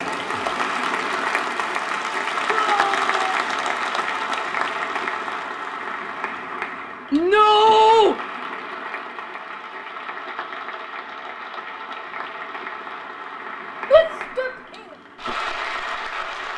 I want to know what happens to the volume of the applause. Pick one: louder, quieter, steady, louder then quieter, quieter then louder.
quieter.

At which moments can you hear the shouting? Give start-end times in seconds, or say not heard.
2.5-3.3, 7.1-8.2, 13.9-14.5.